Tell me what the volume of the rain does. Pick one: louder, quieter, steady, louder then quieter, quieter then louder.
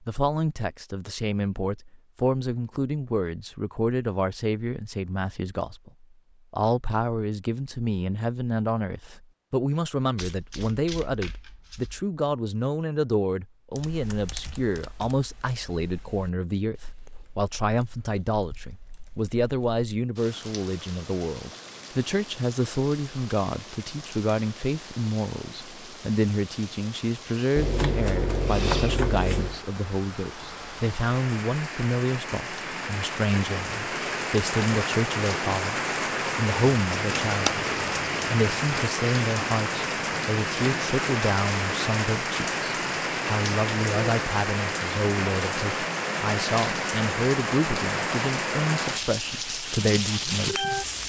louder.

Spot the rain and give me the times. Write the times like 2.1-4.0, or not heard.
20.1-51.0.